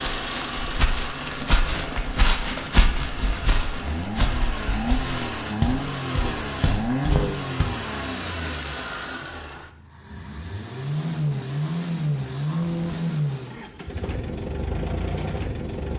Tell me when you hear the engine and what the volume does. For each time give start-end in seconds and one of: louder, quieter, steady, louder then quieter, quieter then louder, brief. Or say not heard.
0.0-15.9 louder.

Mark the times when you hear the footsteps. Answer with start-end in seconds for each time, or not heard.
0.0-7.7.